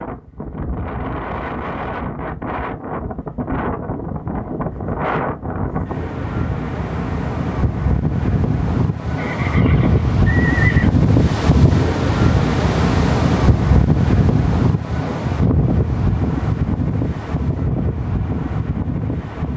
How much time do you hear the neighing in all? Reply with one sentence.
The neighing can be heard for 2 seconds in total.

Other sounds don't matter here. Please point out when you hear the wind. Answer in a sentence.
You can hear the wind from 0.0 to 19.5 s.